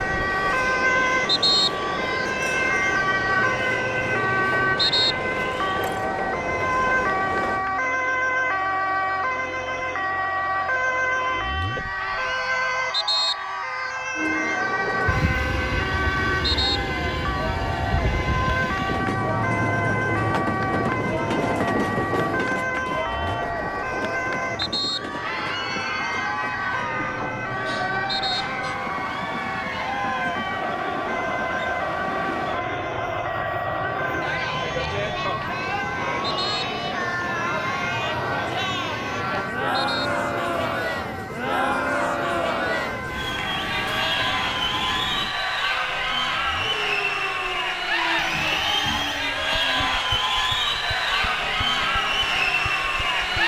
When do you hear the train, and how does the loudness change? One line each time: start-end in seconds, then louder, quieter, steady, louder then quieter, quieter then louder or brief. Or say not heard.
0.0-7.7 steady
14.2-45.4 quieter.